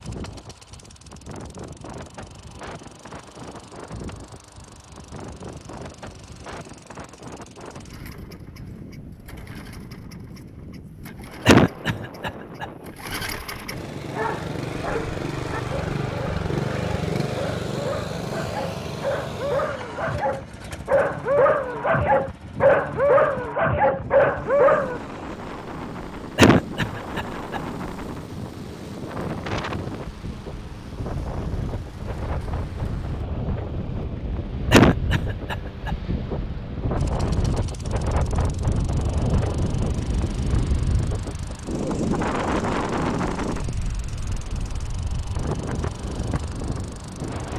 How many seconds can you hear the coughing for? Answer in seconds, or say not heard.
4 s.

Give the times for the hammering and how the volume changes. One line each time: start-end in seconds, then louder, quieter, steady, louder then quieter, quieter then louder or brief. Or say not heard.
not heard.